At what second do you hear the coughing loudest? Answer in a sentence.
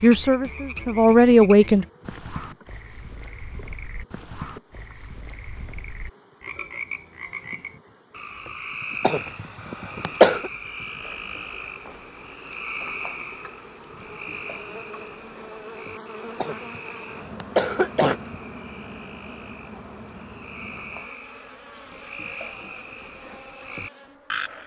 The volume of the coughing peaks at 10 seconds.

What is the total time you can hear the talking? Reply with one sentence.
The talking can be heard for 2 seconds in total.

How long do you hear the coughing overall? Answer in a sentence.
The coughing can be heard for 3 seconds in total.